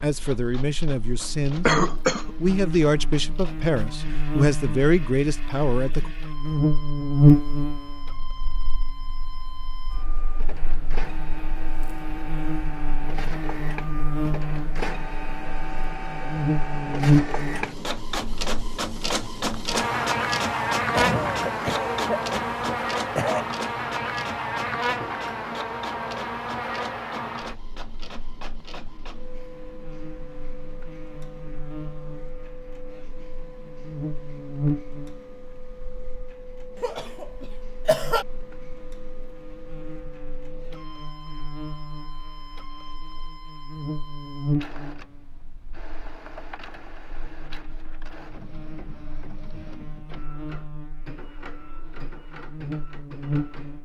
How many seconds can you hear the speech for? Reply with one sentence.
You can hear the speech for 6 seconds altogether.